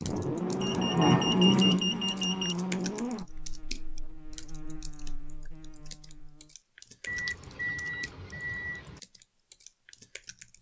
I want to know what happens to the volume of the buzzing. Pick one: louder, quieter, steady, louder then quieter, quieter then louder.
quieter.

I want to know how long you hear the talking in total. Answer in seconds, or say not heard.
not heard.